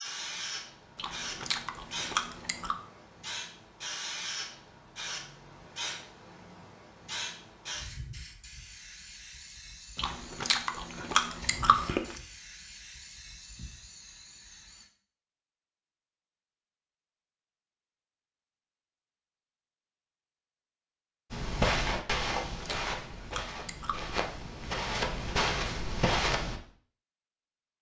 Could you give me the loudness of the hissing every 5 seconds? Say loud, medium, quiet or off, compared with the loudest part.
loud, loud, medium, off, off, off.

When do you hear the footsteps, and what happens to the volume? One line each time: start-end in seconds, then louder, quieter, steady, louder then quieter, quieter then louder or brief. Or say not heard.
21.3-26.6 quieter then louder.